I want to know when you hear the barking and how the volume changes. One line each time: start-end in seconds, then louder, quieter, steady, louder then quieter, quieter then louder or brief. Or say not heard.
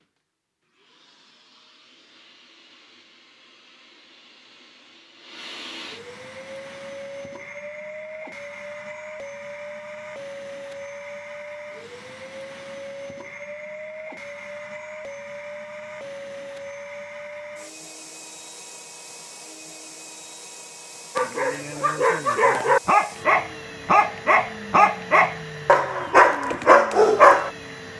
21.1-27.5 louder.